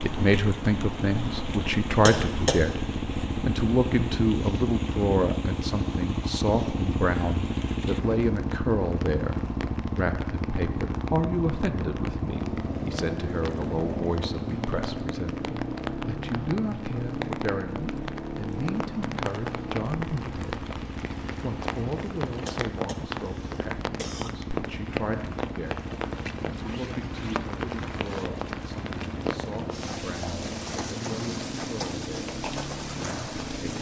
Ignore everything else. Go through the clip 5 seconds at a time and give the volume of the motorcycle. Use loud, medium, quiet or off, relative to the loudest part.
loud, loud, loud, loud, medium, medium, medium.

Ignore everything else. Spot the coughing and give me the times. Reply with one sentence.
The coughing can be heard from 2.0 to 2.6 s and from 22.4 to 24.4 s.